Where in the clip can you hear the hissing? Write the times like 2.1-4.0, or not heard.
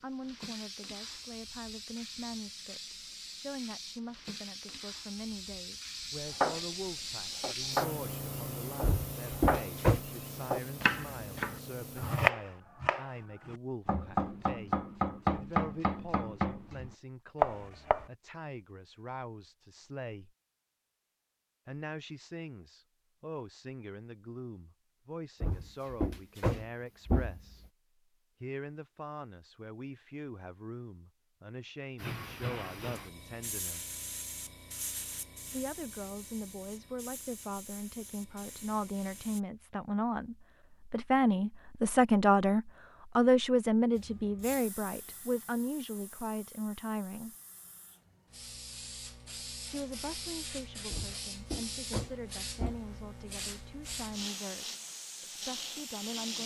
0.0-12.3, 31.9-39.4, 44.0-56.3.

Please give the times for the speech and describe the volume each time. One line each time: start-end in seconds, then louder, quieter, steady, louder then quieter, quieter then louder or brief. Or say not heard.
0.0-20.3 steady
21.6-27.6 steady
28.4-34.0 steady
35.5-47.4 louder then quieter
49.6-56.3 steady.